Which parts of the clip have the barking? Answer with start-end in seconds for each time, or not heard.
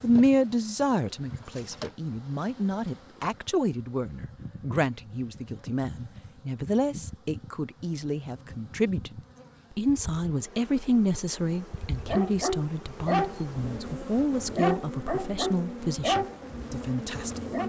11.9-17.6.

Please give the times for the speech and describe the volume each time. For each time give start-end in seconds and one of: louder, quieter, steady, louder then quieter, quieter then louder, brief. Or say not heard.
0.0-17.6 steady.